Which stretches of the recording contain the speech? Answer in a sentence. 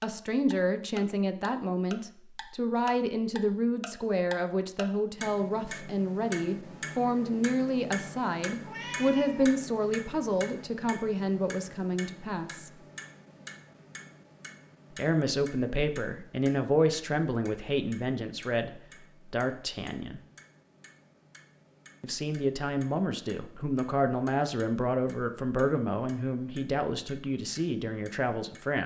The speech can be heard from 0.0 to 12.7 s, from 14.9 to 20.2 s and from 22.0 to 28.8 s.